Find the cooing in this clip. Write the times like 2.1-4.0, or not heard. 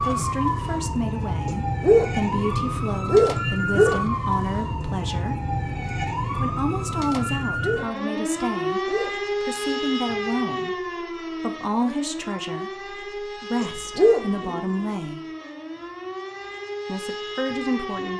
not heard.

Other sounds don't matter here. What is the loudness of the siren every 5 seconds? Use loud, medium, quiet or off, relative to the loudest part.
loud, loud, medium, medium.